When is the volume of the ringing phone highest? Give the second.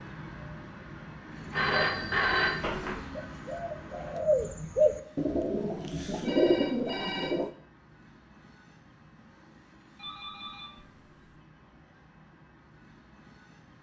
2 s.